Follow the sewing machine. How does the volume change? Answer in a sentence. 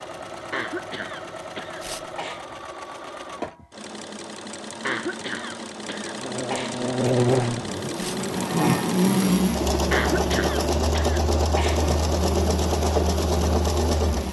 The volume of the sewing machine goes up.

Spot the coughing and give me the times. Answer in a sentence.
You can hear the coughing from 0.5 to 2.5 s, from 4.8 to 6.8 s and from 9.9 to 11.8 s.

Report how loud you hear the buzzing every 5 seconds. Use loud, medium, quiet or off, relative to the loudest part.
off, loud, medium.